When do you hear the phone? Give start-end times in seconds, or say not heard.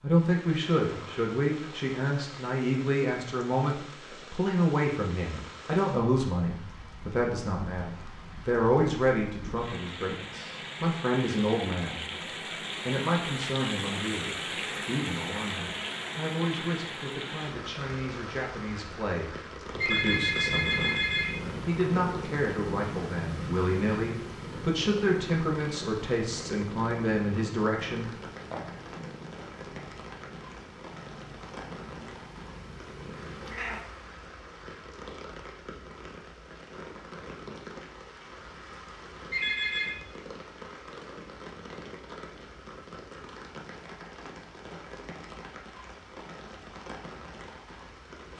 19.8-21.4, 39.3-40.0.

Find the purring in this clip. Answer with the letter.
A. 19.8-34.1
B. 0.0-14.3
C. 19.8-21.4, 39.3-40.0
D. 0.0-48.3
A.